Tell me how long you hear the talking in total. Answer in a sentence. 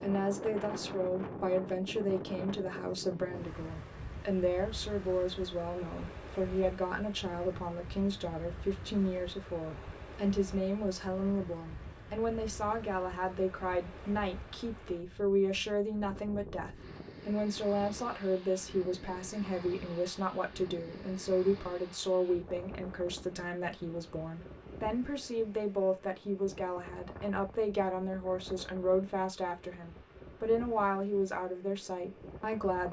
You can hear the talking for 33 seconds altogether.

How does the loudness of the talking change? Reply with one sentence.
The loudness of the talking stays about the same.